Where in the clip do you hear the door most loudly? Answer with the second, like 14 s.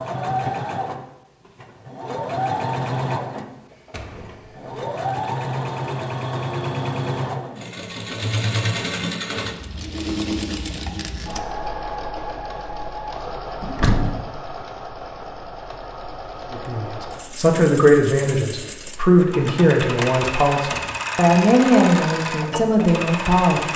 14 s.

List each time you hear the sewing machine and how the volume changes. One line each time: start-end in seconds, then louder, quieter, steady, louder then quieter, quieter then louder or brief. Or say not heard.
0.0-23.7 quieter then louder.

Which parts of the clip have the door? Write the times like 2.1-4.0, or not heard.
3.9-4.7, 13.6-14.2, 20.0-21.0.